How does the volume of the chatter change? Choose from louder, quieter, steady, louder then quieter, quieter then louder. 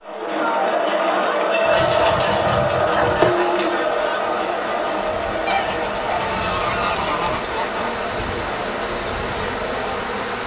quieter.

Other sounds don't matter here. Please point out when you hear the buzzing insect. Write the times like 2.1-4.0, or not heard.
1.8-10.4.